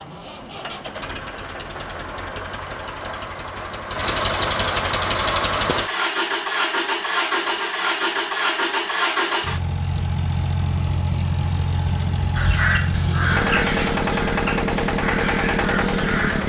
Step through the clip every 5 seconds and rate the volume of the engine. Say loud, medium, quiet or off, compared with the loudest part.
medium, loud, loud, loud.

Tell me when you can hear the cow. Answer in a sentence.
The cow can't be heard in this clip.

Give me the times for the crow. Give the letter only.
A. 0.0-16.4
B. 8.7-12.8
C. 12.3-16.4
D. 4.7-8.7
C.